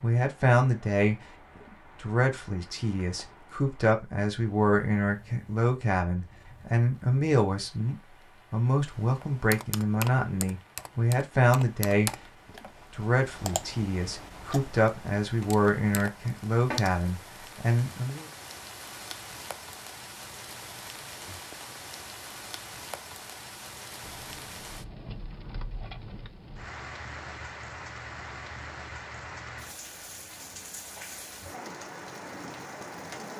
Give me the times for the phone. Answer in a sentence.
The phone can be heard from 24.0 to 24.9 s.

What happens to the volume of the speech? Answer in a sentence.
The loudness of the speech stays about the same.